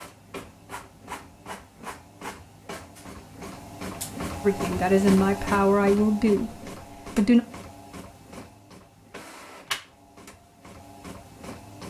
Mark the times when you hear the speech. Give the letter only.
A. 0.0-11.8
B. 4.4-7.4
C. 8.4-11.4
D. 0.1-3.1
B.